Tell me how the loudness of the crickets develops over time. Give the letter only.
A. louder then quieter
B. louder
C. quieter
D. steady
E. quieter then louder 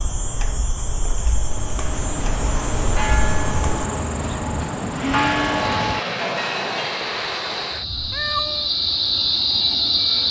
B.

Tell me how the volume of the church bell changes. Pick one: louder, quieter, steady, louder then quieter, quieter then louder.
louder.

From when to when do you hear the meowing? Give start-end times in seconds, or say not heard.
8.0-8.7.